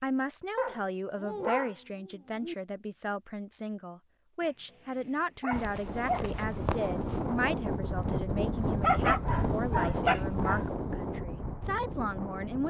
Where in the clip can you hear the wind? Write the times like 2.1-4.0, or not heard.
5.8-12.6.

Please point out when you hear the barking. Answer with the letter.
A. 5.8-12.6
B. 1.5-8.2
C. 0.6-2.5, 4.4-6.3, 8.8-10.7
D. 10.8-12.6
C.